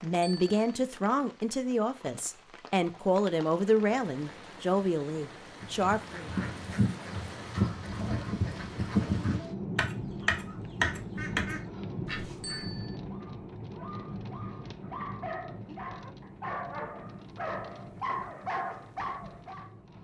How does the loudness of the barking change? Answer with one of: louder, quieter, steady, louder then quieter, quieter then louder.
louder.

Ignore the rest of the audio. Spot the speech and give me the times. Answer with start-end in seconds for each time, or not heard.
0.0-6.3.